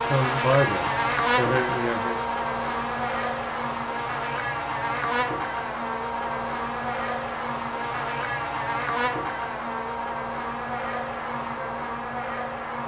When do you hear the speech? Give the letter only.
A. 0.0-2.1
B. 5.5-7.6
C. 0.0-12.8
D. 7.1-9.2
A.